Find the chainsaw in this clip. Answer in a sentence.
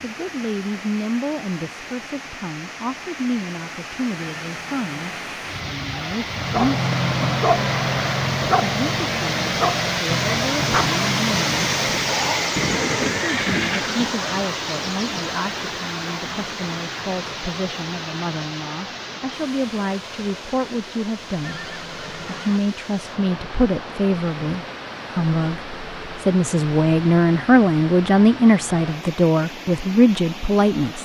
You can't hear the chainsaw here.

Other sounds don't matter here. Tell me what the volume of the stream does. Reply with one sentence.
The loudness of the stream goes up, then down.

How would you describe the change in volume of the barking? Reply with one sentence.
The loudness of the barking goes down.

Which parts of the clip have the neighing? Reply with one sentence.
The neighing can be heard from 4.2 to 5.3 s, from 12.6 to 14.2 s and from 21.4 to 22.6 s.